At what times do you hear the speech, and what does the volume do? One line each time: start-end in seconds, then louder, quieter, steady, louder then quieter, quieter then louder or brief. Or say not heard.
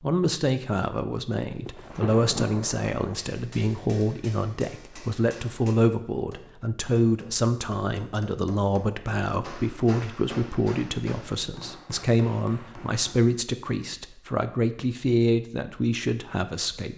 0.0-16.9 steady.